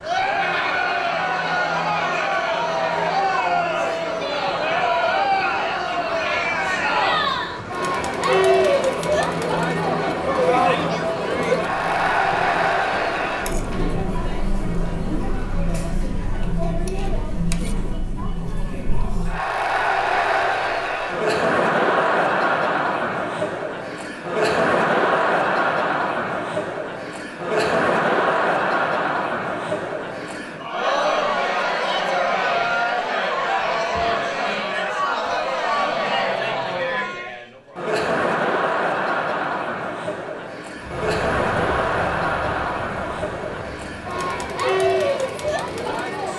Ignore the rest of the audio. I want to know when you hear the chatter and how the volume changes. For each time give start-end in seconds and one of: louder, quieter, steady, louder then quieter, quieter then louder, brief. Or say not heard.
0.0-46.3 steady.